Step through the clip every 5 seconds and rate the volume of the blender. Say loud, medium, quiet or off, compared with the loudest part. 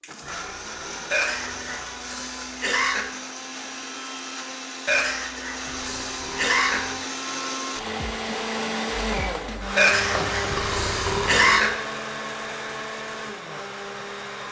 medium, loud, loud.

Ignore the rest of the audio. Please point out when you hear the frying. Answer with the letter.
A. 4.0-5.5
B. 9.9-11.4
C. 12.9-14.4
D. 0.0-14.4
B.